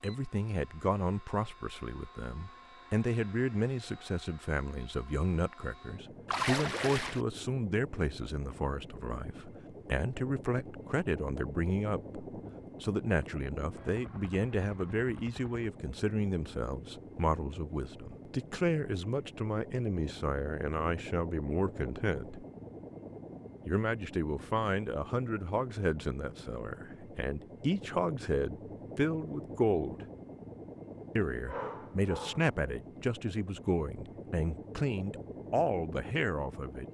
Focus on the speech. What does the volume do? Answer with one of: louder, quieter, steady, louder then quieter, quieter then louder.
steady.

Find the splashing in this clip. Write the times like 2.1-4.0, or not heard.
6.2-7.2.